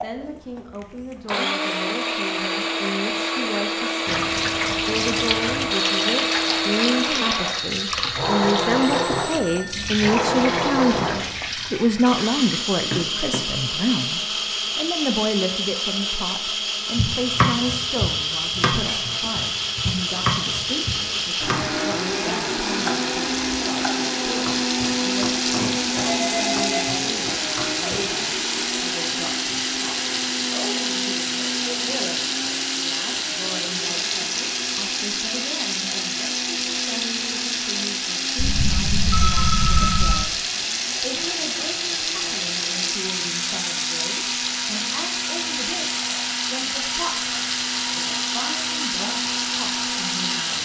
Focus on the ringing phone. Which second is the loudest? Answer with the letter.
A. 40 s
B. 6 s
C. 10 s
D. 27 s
A.